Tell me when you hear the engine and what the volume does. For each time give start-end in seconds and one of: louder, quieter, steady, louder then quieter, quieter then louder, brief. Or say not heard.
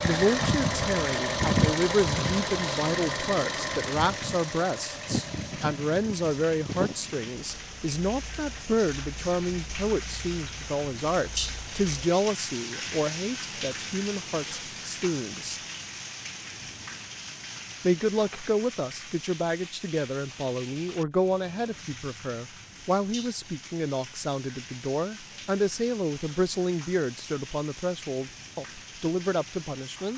0.0-12.1 quieter.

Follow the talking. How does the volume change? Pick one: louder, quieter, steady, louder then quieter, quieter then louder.
steady.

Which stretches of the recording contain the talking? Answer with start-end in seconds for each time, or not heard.
0.0-15.6, 17.8-30.1.